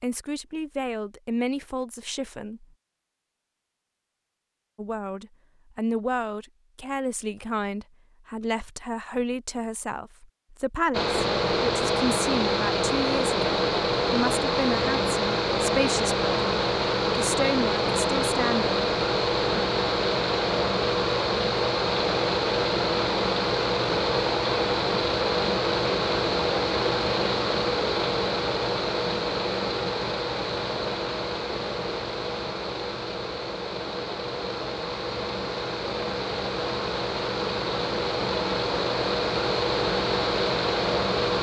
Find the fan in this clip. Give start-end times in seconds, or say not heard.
10.9-41.3.